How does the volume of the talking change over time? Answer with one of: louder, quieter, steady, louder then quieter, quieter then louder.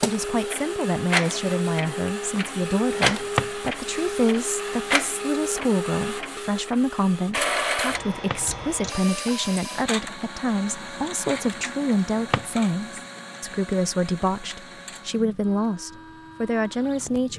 steady.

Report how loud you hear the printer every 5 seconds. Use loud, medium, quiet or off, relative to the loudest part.
loud, loud, medium, quiet.